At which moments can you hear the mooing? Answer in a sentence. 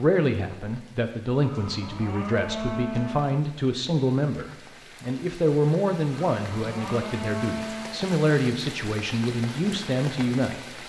The mooing can be heard from 1.4 to 3.3 s and from 6.3 to 8.0 s.